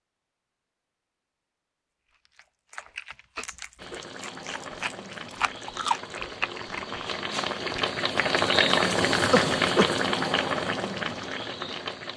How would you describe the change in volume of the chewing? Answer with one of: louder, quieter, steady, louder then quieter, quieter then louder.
louder.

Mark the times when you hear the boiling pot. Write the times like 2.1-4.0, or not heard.
3.8-12.1.